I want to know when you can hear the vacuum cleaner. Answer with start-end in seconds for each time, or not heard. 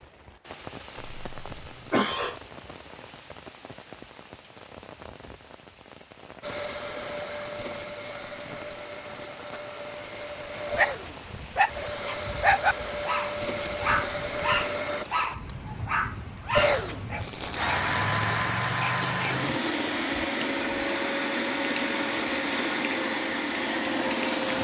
6.4-15.1, 16.5-24.5.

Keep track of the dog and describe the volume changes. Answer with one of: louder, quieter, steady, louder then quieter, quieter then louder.
quieter.